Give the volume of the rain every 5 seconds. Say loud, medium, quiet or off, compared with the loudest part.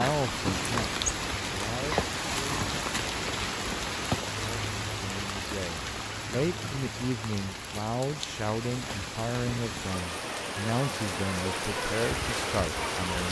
loud, medium, loud.